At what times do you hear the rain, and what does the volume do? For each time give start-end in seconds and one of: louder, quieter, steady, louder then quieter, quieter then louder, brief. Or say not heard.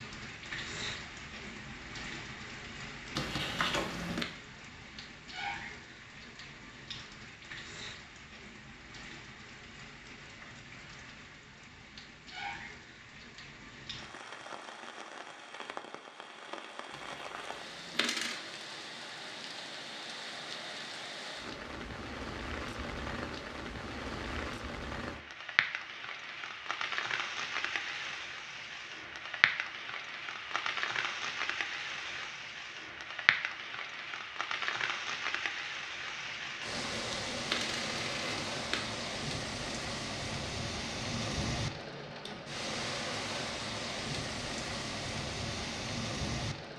0.0-46.7 louder.